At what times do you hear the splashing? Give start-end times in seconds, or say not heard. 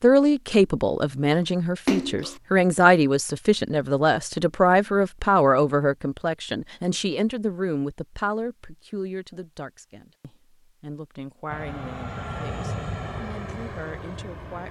1.9-2.4.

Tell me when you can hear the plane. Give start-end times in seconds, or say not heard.
11.4-14.6.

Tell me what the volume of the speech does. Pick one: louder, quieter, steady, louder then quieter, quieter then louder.
quieter.